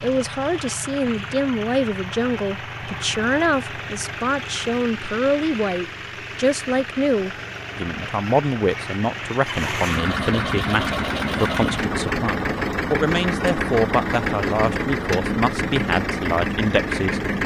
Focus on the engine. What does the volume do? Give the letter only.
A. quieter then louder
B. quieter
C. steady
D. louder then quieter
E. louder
E.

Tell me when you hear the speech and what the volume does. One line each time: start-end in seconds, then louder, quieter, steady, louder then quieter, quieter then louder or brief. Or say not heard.
0.0-17.2 steady.